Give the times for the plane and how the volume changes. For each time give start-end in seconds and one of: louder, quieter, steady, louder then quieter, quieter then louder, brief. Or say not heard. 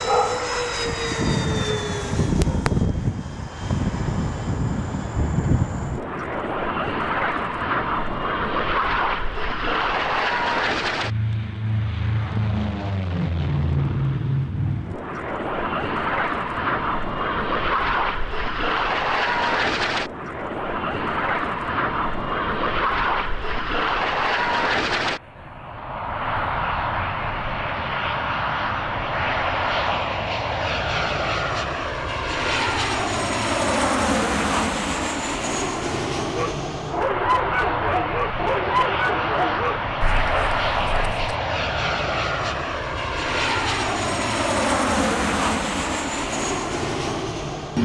0.0-47.8 steady.